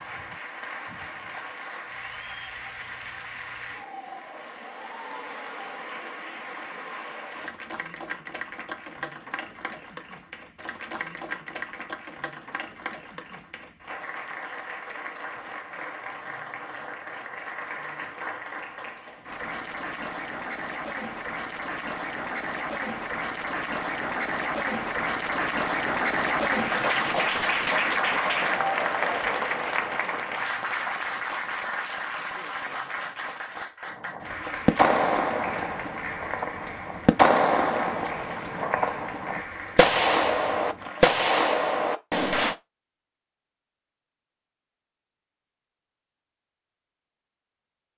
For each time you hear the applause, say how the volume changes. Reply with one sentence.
The applause can be heard from 0.0 to 41.2 s, getting louder then quieter.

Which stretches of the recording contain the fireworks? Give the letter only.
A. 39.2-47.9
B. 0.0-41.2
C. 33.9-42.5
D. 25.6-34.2
C.